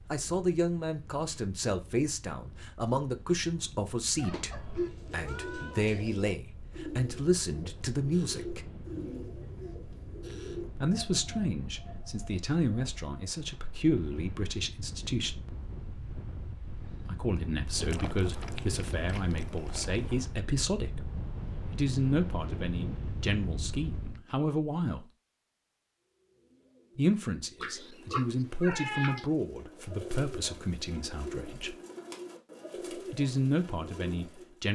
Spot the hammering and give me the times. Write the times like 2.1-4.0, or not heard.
not heard.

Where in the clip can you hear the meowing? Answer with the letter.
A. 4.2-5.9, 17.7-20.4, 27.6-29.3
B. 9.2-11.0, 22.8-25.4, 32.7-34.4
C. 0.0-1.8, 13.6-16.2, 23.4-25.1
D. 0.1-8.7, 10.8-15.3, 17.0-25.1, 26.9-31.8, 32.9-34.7
A.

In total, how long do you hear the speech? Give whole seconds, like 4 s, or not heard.
28 s.